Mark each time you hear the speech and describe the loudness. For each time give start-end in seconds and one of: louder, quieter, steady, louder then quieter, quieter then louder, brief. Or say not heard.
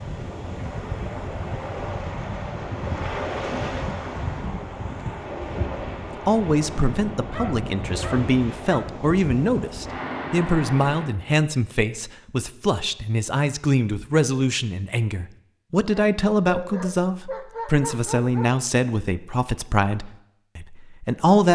6.2-21.5 steady.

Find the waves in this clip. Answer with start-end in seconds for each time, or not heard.
0.0-11.1.